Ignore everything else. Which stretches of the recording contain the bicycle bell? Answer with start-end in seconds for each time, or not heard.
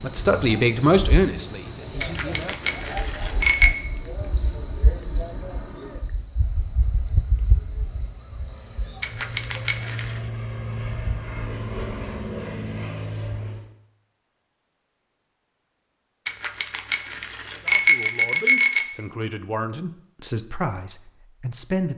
2.0-3.8, 9.0-10.2, 16.2-18.9.